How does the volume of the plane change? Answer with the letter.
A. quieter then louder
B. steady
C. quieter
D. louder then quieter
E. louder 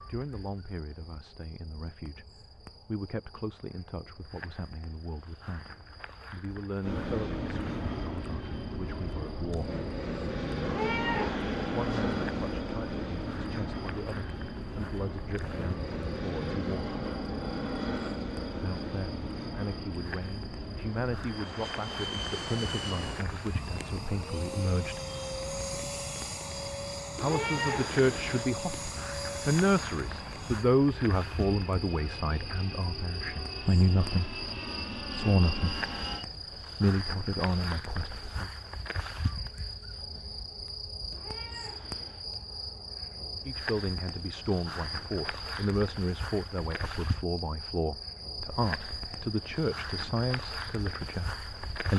C.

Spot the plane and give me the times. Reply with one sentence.
You can hear the plane from 6.8 to 36.2 s.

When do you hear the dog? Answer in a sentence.
The dog can't be heard in this clip.